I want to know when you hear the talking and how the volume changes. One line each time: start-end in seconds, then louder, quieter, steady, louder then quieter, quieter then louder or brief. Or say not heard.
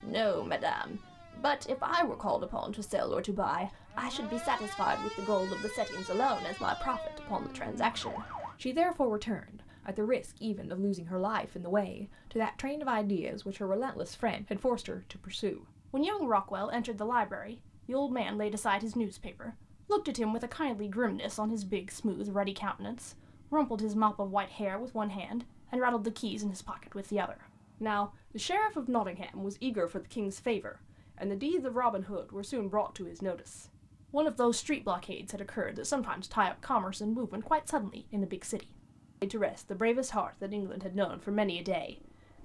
0.0-42.4 steady.